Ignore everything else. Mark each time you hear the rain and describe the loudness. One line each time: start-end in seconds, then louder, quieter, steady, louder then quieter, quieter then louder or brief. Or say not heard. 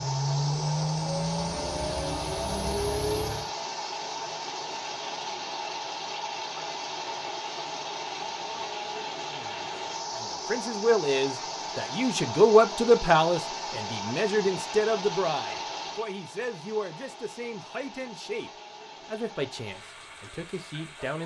0.0-21.2 quieter.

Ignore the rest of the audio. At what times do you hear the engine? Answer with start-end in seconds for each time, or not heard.
0.0-3.5.